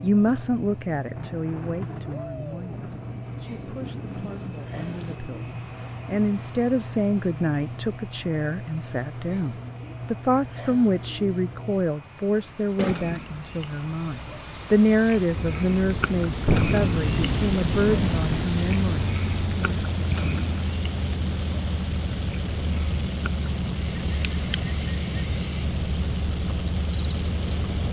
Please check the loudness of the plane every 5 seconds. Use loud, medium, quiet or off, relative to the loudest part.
quiet, quiet, quiet, loud, loud, loud.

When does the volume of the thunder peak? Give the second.
17 s.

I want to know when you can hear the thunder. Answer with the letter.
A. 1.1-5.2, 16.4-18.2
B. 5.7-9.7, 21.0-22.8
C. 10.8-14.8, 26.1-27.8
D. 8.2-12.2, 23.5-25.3
A.